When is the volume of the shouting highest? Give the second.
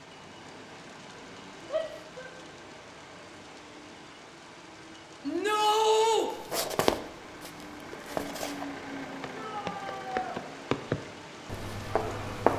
6 s.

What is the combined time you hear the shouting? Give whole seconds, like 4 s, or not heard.
3 s.